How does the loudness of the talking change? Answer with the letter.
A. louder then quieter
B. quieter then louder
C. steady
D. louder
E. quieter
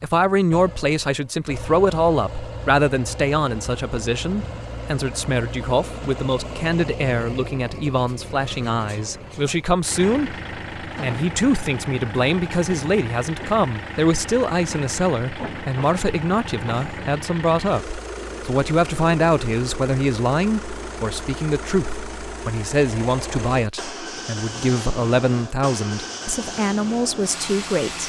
C.